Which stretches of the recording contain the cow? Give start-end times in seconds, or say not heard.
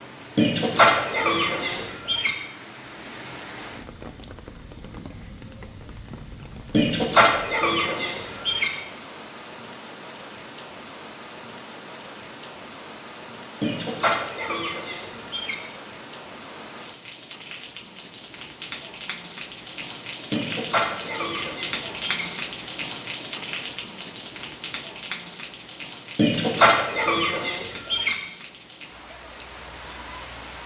not heard.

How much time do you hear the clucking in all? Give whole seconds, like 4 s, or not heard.
10 s.